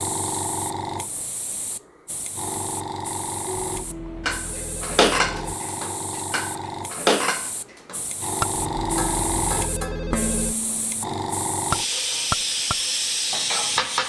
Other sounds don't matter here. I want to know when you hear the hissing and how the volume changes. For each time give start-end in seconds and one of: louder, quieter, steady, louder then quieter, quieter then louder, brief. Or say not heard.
0.0-14.0 louder.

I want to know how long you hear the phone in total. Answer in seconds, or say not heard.
4 s.